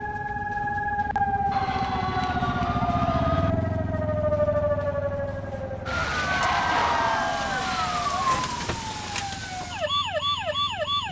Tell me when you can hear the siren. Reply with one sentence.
The siren can be heard from 0.0 to 11.0 s.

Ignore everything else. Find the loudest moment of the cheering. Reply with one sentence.
The loudest moment of the cheering is at 7 seconds.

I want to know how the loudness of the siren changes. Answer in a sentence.
The loudness of the siren stays about the same.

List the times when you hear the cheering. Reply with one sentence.
The cheering can be heard from 1.5 to 3.5 s and from 6.4 to 8.4 s.